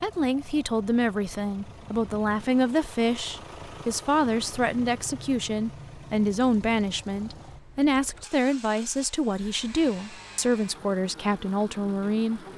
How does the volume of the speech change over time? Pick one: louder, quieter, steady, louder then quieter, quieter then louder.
steady.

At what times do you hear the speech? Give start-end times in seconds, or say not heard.
0.0-12.4.